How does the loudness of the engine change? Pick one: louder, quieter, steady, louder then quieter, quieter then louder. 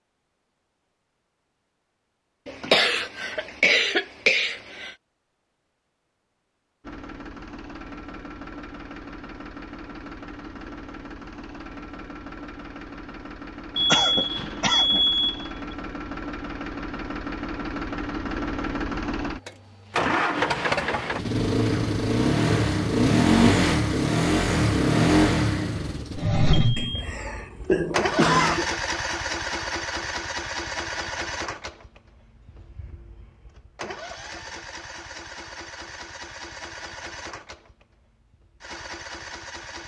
louder then quieter.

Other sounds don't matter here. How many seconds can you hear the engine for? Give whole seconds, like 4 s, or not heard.
33 s.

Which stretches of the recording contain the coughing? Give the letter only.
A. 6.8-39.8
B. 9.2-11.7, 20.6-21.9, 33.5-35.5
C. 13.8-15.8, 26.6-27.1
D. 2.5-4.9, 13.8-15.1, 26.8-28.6
D.